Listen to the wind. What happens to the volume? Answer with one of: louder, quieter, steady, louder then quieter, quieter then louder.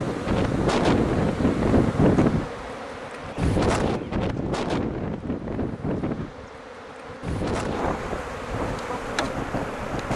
quieter.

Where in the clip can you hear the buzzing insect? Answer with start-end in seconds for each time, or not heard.
0.0-10.1.